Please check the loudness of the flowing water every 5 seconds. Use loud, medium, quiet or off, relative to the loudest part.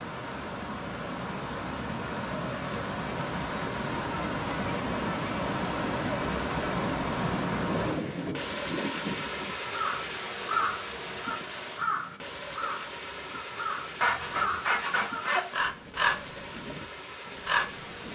loud, loud, medium, medium.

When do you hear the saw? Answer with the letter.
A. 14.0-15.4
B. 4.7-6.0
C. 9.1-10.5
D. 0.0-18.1
A.